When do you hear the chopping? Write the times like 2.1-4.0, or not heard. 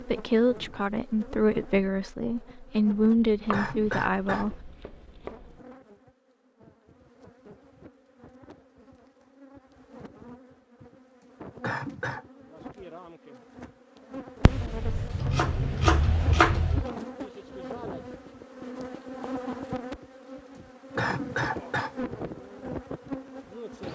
3.1-5.6, 14.4-16.9.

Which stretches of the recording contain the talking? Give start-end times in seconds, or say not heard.
0.0-4.5.